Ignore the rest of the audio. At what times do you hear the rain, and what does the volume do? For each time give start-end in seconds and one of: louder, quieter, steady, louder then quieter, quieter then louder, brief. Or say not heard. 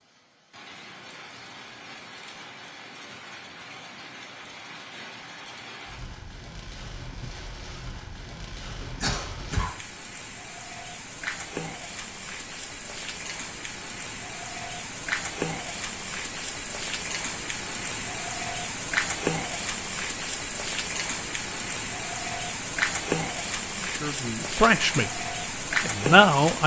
0.0-26.6 louder.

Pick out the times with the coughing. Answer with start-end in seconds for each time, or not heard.
8.6-9.8.